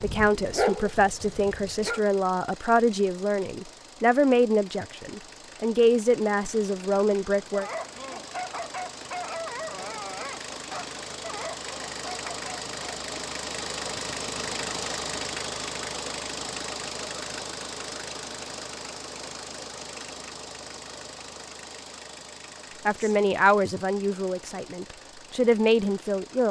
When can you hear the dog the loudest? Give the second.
1 s.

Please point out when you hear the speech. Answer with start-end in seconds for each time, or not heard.
0.0-7.7, 22.9-26.4.